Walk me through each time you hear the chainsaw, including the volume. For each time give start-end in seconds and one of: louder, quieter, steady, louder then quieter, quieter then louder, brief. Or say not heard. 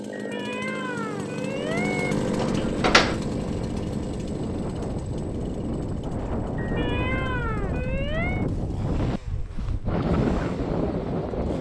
0.0-11.5 quieter.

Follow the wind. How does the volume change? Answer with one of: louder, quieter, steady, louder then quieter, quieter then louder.
louder.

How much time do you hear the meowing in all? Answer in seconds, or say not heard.
4 s.